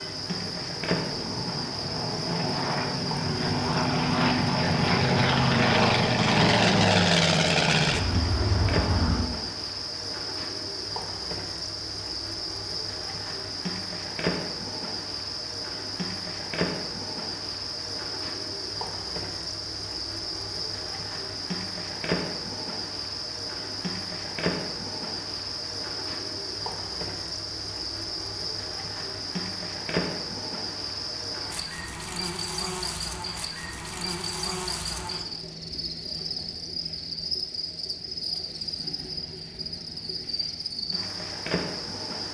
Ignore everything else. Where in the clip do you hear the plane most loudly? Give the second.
7 s.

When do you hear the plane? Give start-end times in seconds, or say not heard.
0.0-9.3.